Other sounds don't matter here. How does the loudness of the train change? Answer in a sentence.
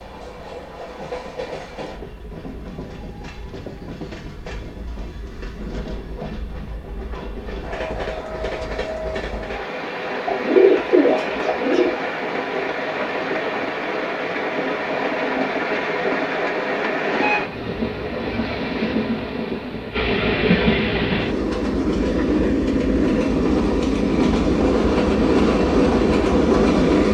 The volume of the train goes up.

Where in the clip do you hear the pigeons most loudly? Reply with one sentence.
The volume of the pigeons peaks at 11 seconds.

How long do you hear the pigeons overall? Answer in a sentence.
You can hear the pigeons for 2 seconds altogether.